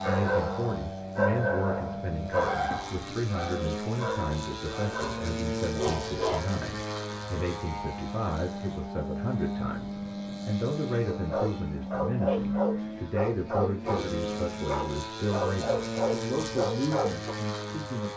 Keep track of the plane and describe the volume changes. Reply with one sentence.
The volume of the plane stays about the same.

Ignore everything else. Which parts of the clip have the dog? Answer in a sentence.
The dog can be heard from 0.0 to 6.4 s and from 11.1 to 17.4 s.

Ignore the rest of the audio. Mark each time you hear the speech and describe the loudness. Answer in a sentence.
You can hear the speech from 0.1 to 18.1 s, at a steady volume.